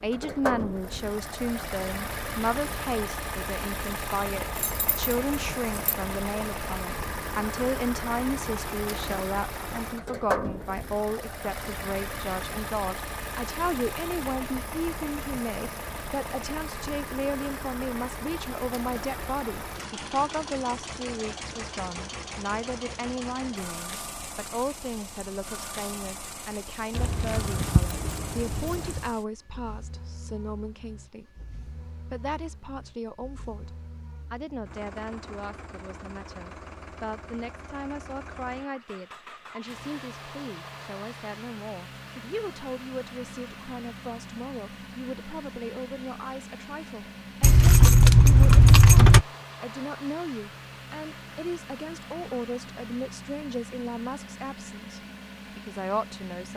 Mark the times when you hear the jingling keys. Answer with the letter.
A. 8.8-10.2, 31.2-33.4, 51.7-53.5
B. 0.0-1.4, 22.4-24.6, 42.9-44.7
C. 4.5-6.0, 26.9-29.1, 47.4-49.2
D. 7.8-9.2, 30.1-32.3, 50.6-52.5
C.